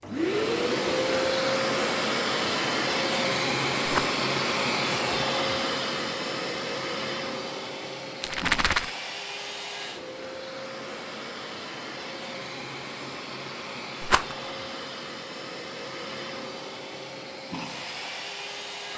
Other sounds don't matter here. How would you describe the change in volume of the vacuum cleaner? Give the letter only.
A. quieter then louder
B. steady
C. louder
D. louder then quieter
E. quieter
E.